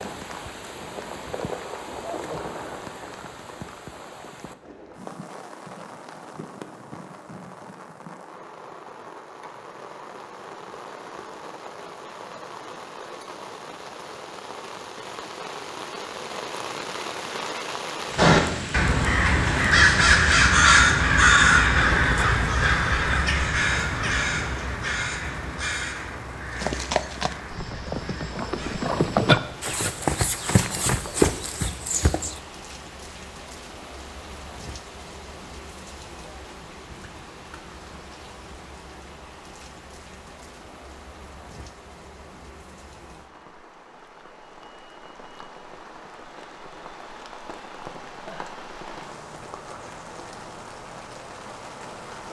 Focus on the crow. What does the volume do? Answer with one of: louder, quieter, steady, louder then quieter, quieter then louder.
quieter.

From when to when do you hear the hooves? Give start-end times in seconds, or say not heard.
26.6-32.4.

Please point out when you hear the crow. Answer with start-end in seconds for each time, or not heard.
18.1-28.8.